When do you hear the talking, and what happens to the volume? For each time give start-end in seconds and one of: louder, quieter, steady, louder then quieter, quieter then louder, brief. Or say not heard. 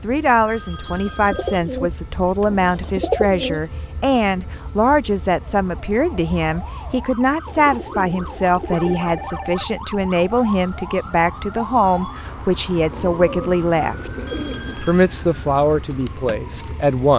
0.0-14.1 steady
14.8-17.1 brief.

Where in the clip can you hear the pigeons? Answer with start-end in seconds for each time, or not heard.
0.8-3.6, 7.5-9.2, 12.9-14.8.